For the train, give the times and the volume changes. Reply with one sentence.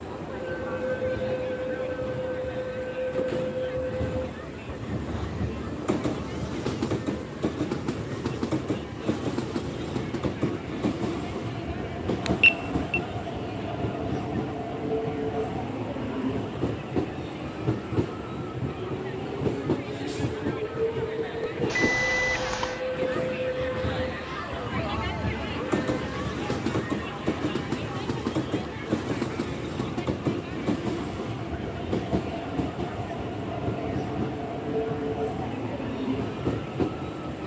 You can hear the train from 0.0 to 37.4 s, at a steady volume.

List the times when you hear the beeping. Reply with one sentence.
The beeping can be heard from 12.2 to 13.0 s and from 21.6 to 22.8 s.